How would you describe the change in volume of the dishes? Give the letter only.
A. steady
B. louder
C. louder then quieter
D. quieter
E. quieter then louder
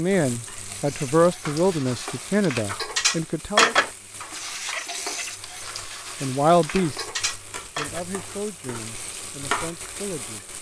C.